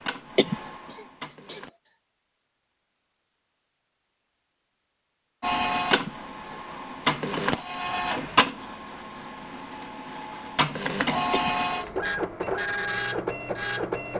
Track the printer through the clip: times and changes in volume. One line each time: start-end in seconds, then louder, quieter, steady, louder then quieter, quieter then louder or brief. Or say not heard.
0.0-1.7 brief
5.4-14.1 quieter then louder.